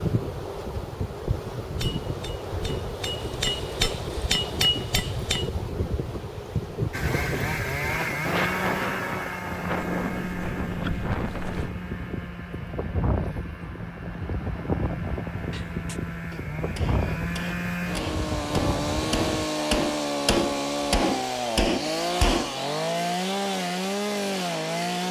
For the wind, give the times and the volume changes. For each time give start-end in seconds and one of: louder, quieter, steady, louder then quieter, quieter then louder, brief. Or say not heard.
0.0-19.5 steady.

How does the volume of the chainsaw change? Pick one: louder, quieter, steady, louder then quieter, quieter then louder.
quieter then louder.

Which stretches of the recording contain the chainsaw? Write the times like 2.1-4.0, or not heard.
6.9-25.0.